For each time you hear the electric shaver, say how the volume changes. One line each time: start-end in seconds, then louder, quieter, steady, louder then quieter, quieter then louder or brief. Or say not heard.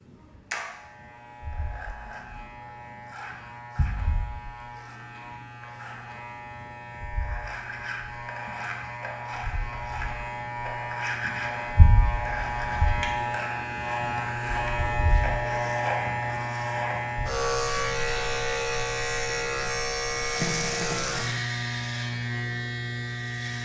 0.0-23.6 louder.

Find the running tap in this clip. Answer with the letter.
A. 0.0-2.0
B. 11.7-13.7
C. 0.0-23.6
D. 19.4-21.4
D.